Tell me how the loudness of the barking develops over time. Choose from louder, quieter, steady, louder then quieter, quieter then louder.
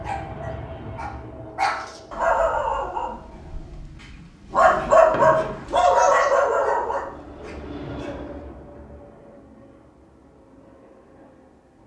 louder then quieter.